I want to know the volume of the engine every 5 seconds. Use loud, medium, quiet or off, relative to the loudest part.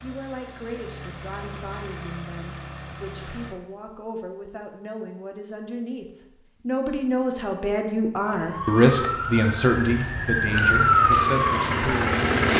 quiet, off, loud.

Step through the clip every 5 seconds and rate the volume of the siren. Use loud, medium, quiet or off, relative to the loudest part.
off, medium, loud.